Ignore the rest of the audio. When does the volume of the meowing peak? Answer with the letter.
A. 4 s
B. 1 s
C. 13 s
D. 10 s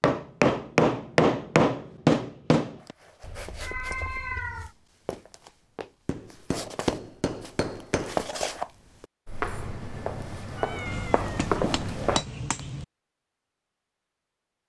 A.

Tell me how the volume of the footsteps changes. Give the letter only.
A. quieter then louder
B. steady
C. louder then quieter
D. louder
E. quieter
D.